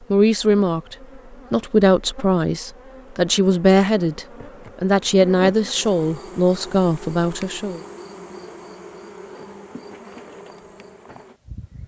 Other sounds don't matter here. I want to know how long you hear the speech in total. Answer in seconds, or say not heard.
8 s.